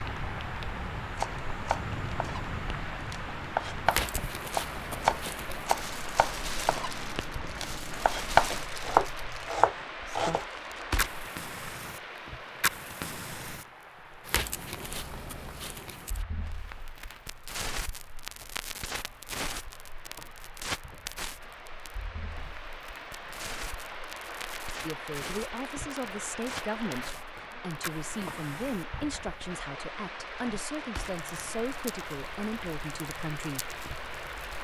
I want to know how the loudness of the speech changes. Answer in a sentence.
The loudness of the speech stays about the same.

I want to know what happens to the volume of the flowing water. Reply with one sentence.
The volume of the flowing water goes down, then up.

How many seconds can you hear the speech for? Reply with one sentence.
You can hear the speech for 9 seconds altogether.